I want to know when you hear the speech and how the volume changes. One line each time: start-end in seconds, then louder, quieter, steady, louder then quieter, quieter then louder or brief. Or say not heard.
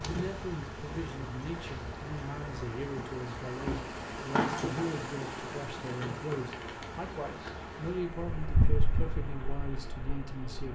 0.0-10.7 steady.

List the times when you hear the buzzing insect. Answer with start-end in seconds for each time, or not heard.
0.0-10.7.